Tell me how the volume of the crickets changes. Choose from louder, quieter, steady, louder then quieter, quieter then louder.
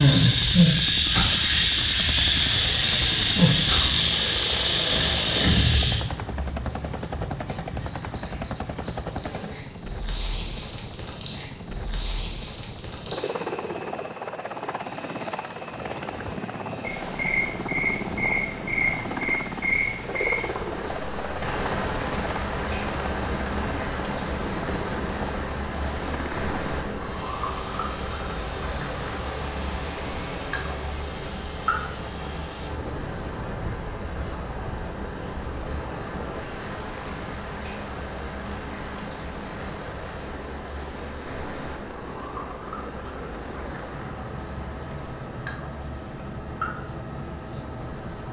quieter.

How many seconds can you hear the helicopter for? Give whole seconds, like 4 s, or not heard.
48 s.